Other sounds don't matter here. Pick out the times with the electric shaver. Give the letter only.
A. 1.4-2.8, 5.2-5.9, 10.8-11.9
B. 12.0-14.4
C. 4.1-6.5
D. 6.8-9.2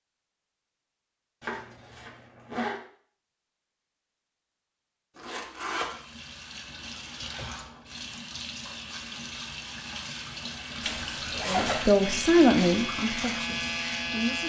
B.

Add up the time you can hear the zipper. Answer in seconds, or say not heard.
3 s.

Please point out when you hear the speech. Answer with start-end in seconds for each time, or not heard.
11.4-14.4.